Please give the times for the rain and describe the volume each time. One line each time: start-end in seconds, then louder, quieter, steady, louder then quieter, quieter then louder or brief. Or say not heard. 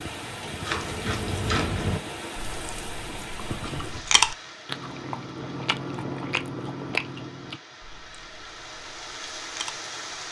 0.0-10.2 quieter then louder.